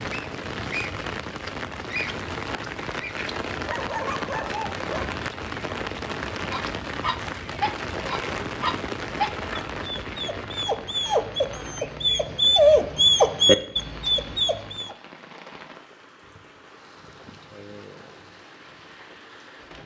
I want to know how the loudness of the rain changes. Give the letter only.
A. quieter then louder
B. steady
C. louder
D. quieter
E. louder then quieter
D.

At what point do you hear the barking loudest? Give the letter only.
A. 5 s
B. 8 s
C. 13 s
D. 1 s
C.